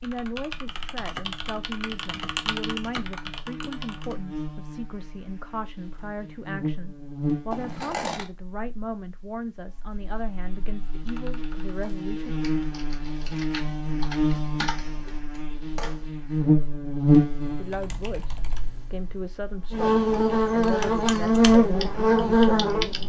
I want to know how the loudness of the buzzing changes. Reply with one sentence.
The loudness of the buzzing goes up.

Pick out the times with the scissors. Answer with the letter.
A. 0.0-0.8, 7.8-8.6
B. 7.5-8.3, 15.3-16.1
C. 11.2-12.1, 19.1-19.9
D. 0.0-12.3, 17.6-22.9
B.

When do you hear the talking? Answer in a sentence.
The talking can be heard from 0.0 to 12.3 s and from 17.6 to 22.9 s.